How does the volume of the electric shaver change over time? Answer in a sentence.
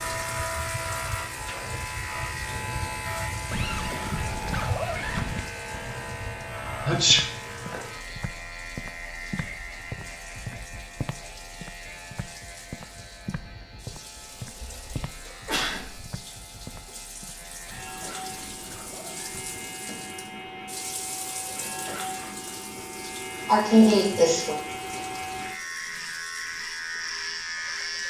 The loudness of the electric shaver goes down, then up.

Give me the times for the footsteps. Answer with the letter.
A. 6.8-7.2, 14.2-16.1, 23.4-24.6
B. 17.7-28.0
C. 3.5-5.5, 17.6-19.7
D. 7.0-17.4
D.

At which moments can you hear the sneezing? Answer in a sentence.
You can hear the sneezing from 6.8 to 7.2 s, from 14.2 to 16.1 s and from 23.4 to 24.6 s.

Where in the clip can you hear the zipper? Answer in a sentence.
You can hear the zipper from 3.5 to 5.5 s and from 17.6 to 19.7 s.